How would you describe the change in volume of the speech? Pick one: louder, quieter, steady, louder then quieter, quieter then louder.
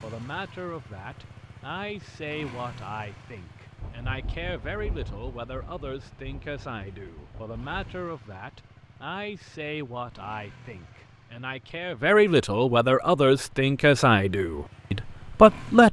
louder.